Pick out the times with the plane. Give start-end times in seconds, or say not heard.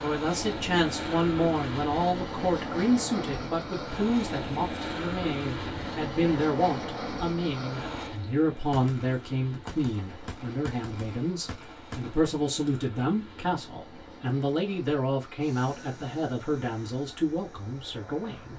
0.0-18.5.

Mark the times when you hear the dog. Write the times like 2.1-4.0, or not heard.
not heard.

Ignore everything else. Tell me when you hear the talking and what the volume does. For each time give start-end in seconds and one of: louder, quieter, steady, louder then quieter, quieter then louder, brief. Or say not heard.
0.0-18.5 steady.